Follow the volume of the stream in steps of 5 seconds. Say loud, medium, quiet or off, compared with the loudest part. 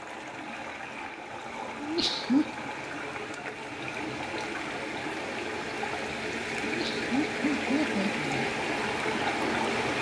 medium, loud.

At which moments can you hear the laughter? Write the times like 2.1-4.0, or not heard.
1.8-2.5, 6.6-8.5.